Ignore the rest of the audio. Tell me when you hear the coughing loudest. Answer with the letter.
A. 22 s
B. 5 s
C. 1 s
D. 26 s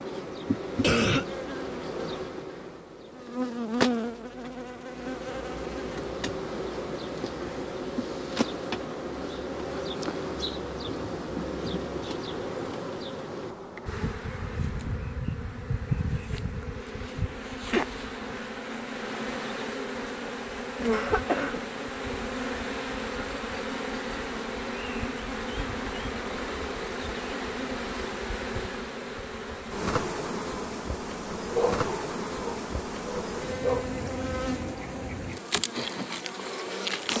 C.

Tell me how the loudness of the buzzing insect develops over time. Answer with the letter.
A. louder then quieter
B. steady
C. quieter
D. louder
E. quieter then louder
B.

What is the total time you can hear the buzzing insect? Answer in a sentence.
The buzzing insect can be heard for 37 seconds in total.